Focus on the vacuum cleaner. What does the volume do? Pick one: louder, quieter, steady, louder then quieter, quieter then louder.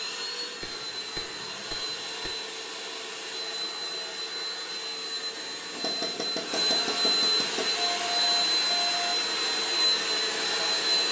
louder.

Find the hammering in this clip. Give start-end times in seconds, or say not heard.
0.6-2.3, 5.7-7.8.